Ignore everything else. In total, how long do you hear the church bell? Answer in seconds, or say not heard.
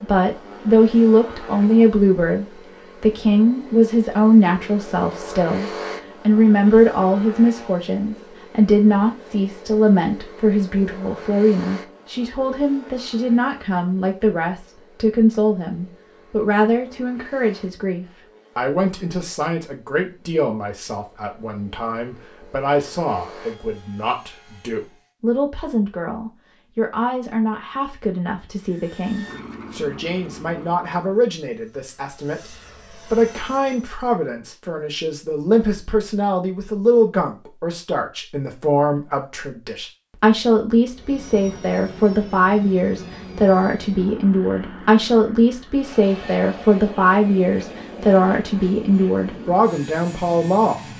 not heard.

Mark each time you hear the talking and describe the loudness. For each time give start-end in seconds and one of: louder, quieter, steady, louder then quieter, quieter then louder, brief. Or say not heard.
0.0-50.8 quieter then louder.